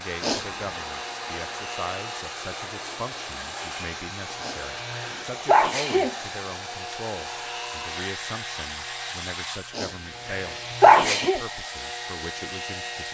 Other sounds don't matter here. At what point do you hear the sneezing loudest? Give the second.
11 s.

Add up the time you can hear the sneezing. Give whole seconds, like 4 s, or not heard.
4 s.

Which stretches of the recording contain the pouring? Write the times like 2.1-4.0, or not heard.
not heard.